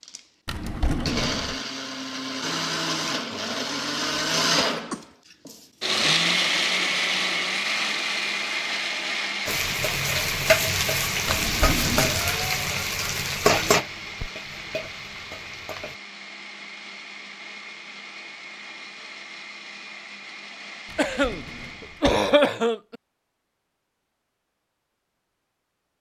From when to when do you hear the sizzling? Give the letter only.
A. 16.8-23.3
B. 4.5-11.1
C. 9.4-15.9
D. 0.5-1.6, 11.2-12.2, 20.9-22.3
C.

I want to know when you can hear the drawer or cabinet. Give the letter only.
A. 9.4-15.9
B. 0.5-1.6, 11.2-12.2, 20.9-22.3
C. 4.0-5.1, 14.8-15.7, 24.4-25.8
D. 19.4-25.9
B.